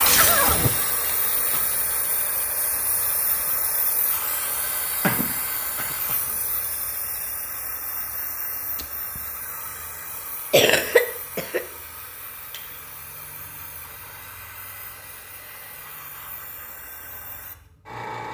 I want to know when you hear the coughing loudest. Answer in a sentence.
The loudest moment of the coughing is at 11 seconds.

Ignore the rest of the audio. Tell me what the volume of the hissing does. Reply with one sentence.
The volume of the hissing goes down.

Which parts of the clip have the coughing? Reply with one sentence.
You can hear the coughing from 5.0 to 6.3 s and from 10.5 to 11.6 s.